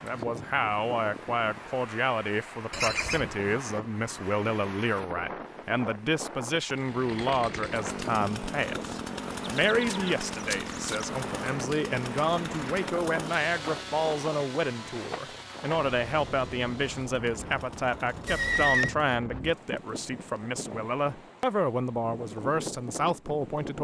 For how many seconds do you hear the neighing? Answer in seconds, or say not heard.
3 s.